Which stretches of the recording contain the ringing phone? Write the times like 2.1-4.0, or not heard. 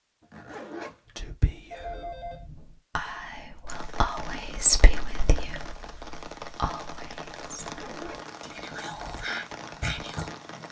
1.7-2.5.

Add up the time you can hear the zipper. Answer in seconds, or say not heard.
2 s.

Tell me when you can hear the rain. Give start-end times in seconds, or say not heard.
3.6-10.6.